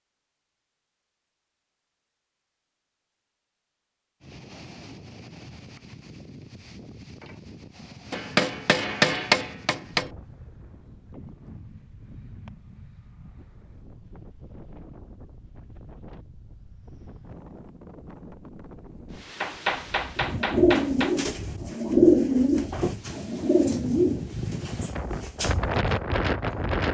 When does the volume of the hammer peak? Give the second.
9 s.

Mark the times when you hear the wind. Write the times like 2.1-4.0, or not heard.
4.2-26.8.